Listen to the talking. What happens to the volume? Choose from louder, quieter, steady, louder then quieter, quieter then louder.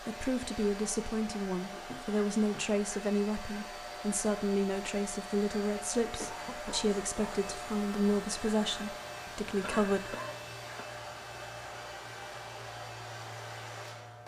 steady.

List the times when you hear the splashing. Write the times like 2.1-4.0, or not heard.
not heard.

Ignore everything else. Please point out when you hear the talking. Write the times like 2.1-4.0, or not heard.
0.0-10.2.